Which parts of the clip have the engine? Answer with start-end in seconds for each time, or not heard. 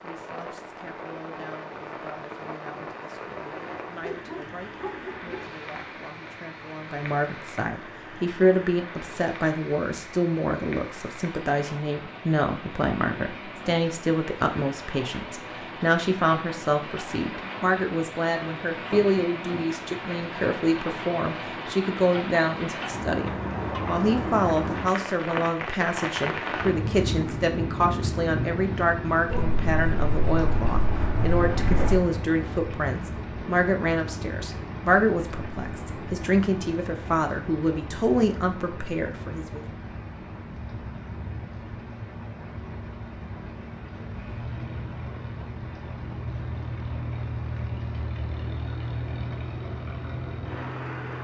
44.1-51.1.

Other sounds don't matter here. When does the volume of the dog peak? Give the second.
32 s.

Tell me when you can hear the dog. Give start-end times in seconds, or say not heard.
4.0-5.5, 29.3-32.0.